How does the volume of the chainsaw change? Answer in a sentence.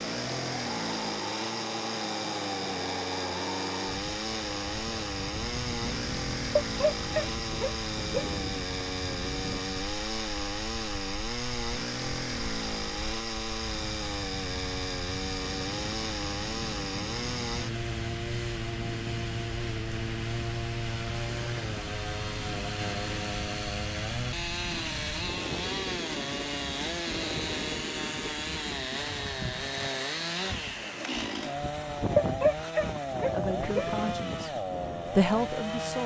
The loudness of the chainsaw stays about the same.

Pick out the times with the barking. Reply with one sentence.
You can hear the barking from 6.5 to 8.3 s and from 32.1 to 33.9 s.